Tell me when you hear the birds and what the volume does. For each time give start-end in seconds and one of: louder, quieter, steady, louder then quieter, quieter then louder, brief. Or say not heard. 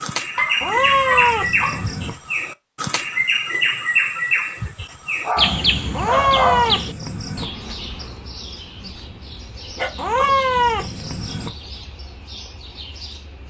0.0-13.4 quieter.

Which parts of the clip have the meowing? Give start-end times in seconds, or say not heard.
0.6-2.1, 5.9-7.5, 9.9-11.5.